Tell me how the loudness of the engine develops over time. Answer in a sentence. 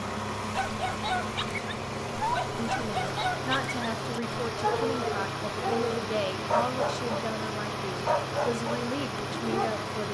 The loudness of the engine stays about the same.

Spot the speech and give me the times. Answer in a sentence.
You can hear the speech from 2.5 to 10.0 s.